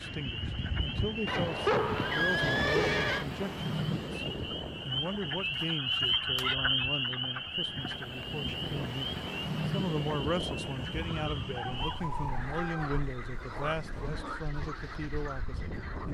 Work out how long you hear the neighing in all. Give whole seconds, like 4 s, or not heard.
4 s.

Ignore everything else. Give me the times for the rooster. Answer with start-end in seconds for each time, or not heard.
11.5-12.8.